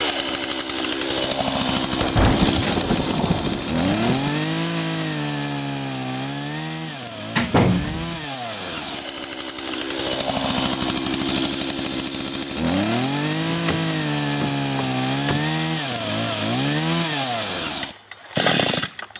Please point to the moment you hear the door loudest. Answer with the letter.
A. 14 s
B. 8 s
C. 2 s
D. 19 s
B.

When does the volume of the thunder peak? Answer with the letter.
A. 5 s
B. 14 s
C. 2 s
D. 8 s
C.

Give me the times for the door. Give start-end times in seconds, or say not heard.
2.5-3.5, 6.8-8.2, 13.4-15.5.